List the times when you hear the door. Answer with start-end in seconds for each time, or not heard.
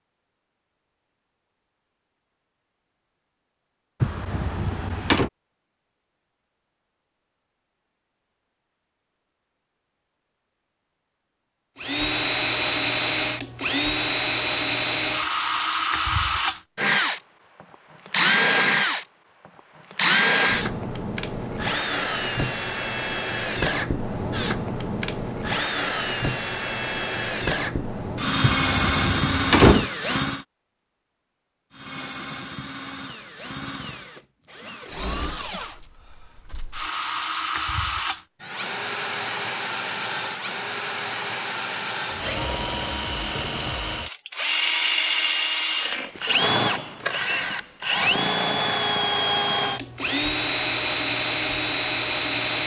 4.0-5.3, 28.6-29.9.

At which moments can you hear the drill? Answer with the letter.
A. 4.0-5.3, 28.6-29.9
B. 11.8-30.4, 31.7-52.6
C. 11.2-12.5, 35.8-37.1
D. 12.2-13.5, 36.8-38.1
B.